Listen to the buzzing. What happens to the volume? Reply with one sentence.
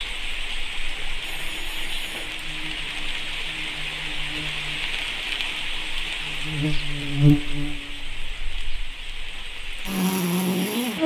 The loudness of the buzzing goes up.